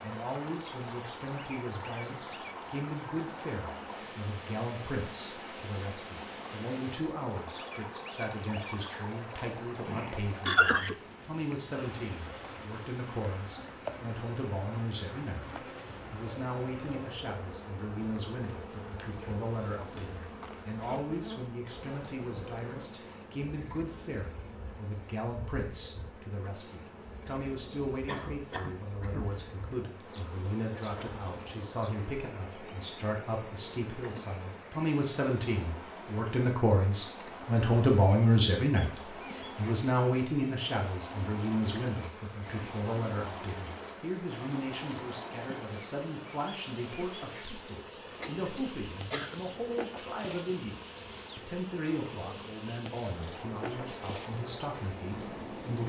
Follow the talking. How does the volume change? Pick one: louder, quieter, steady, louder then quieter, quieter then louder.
louder then quieter.